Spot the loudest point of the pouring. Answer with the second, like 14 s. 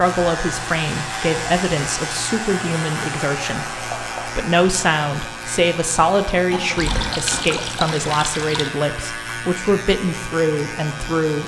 7 s.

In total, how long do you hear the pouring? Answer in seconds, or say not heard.
2 s.